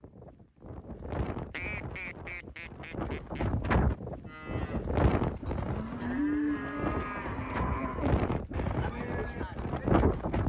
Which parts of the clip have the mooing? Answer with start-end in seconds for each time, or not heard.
4.2-9.9.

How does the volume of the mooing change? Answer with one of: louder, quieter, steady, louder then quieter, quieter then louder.
louder then quieter.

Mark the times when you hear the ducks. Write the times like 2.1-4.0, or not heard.
1.5-3.5, 7.0-8.9.